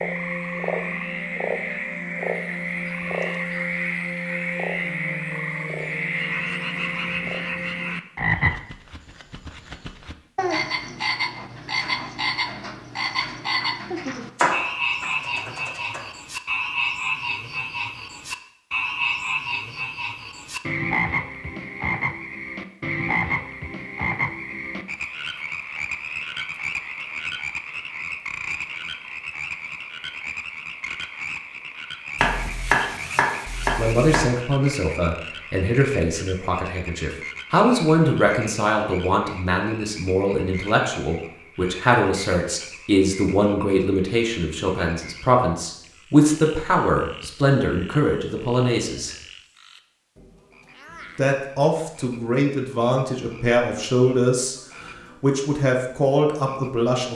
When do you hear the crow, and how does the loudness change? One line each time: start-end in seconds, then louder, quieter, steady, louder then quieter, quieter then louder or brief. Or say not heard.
not heard.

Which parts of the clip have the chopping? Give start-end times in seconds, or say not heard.
14.3-16.0, 32.1-34.3.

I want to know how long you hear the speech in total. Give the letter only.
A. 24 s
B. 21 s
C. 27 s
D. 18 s
B.